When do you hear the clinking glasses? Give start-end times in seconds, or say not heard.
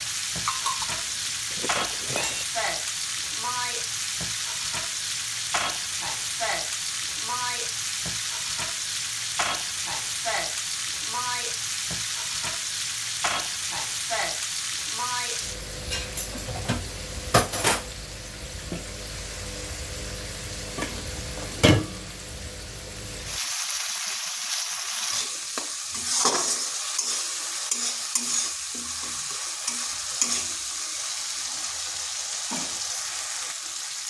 0.5-2.5.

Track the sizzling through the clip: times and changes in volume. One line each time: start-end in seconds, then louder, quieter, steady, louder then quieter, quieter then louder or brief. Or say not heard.
0.0-34.0 steady.